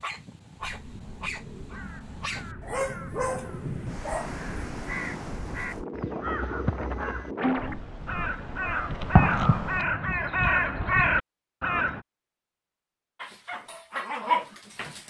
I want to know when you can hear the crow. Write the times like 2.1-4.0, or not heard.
0.6-12.0.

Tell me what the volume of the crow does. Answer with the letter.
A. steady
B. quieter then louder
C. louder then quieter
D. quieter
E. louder
E.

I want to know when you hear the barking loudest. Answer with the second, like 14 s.
14 s.